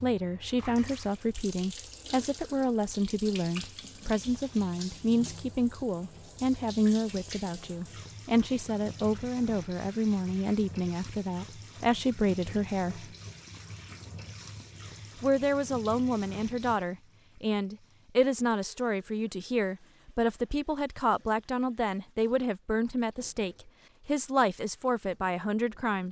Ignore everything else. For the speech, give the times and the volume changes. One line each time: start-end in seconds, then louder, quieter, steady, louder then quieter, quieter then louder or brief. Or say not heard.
0.0-13.1 steady
15.2-26.0 steady.